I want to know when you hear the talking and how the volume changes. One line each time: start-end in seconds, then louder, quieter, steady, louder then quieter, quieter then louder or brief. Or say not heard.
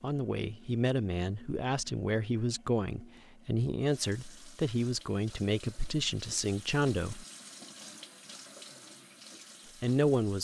0.0-7.2 steady
9.8-10.3 brief.